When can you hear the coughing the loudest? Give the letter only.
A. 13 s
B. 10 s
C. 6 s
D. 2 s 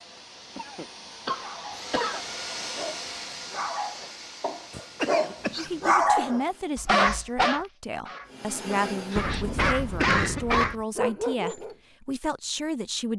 B.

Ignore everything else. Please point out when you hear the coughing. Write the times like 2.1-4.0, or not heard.
0.6-2.2, 4.7-6.3, 9.2-10.8.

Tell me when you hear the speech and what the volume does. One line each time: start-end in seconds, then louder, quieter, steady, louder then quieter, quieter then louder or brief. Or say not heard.
5.5-13.1 steady.